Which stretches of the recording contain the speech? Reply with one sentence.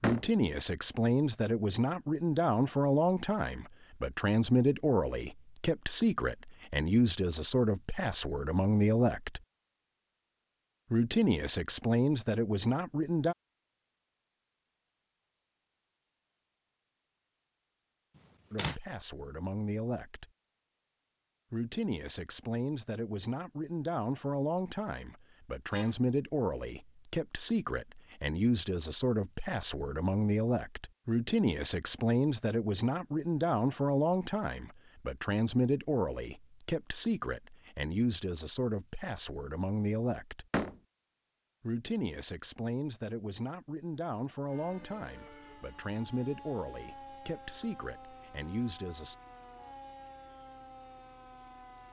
You can hear the speech from 0.0 to 9.4 s, from 10.9 to 13.3 s, from 18.5 to 20.2 s, from 21.5 to 40.5 s and from 41.6 to 49.1 s.